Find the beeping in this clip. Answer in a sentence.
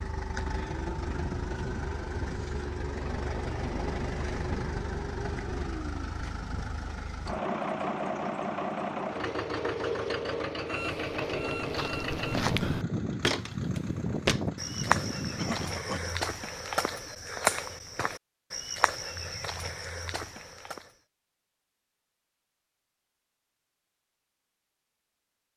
You can hear the beeping from 10.7 to 12.3 s.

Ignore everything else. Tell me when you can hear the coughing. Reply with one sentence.
The coughing can be heard from 15.3 to 16.1 s.